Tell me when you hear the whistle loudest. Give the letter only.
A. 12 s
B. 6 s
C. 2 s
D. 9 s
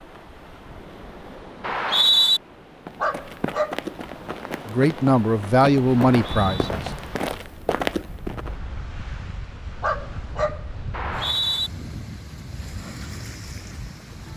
C.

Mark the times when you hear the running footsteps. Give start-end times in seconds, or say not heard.
2.9-8.6.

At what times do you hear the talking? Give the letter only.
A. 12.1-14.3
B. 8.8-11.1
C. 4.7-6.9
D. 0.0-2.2
C.